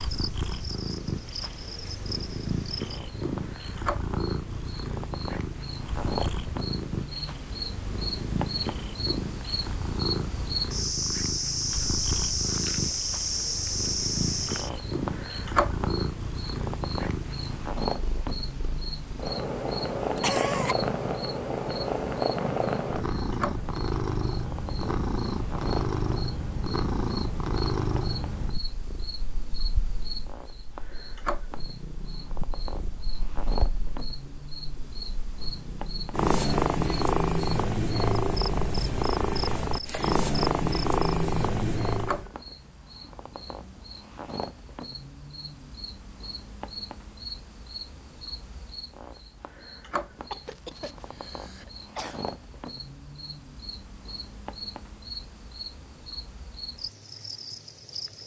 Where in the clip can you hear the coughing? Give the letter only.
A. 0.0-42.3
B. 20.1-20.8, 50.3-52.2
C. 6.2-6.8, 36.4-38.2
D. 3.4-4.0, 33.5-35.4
B.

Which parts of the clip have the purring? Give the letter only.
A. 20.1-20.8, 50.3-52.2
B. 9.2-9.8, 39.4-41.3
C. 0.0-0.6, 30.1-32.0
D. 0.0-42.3
D.